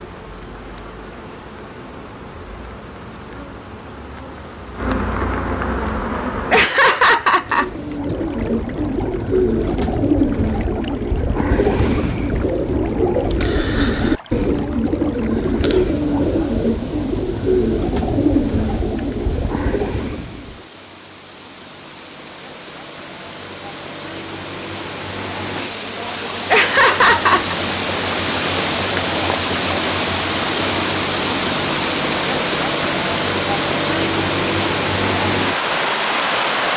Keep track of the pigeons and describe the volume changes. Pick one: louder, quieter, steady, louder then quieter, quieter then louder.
steady.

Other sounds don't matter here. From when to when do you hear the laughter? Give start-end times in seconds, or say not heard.
6.5-8.2, 26.5-27.6.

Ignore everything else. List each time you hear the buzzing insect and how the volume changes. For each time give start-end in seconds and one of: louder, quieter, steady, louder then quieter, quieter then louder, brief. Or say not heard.
0.0-6.7 louder.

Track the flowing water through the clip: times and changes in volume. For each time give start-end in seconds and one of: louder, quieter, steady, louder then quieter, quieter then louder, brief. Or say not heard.
0.0-36.7 louder.